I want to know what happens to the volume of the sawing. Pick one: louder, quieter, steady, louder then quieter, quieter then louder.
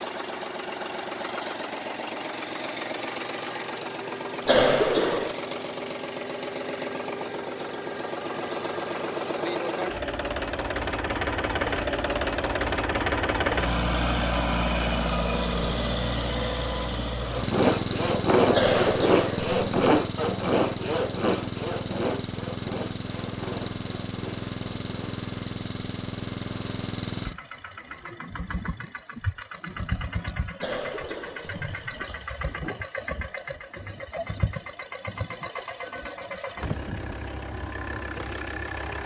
quieter.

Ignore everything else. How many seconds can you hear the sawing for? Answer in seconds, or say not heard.
8 s.